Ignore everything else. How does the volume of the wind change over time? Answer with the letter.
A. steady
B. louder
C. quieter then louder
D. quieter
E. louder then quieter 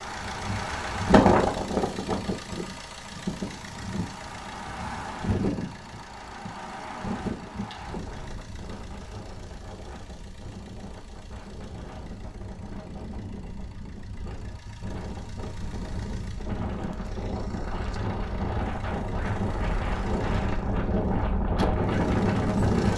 C.